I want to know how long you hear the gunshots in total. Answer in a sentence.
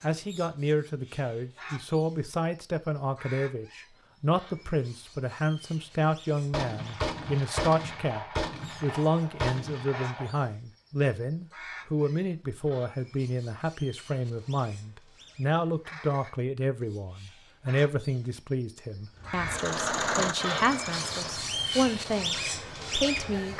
The gunshots can be heard for 4 seconds in total.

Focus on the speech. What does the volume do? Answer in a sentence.
The volume of the speech stays about the same.